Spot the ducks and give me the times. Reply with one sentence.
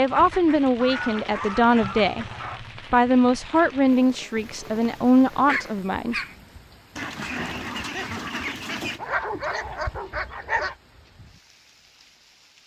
The ducks can be heard from 0.1 to 2.5 s and from 7.0 to 9.0 s.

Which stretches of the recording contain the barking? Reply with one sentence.
The barking can be heard from 0.8 to 2.6 s, from 4.3 to 6.3 s and from 8.9 to 10.8 s.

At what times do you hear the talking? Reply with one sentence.
The talking can be heard from 0.0 to 2.2 s and from 2.9 to 6.2 s.